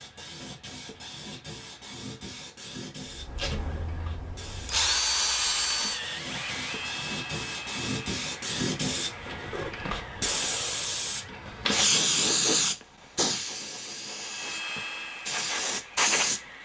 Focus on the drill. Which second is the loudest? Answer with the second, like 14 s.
5 s.